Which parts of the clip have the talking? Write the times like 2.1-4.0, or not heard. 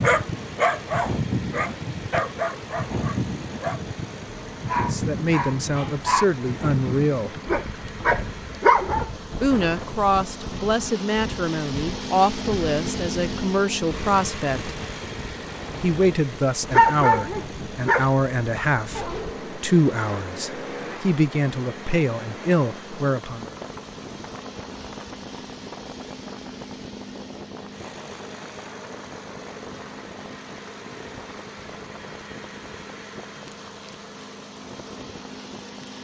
4.9-7.3, 9.4-14.7, 15.8-23.5.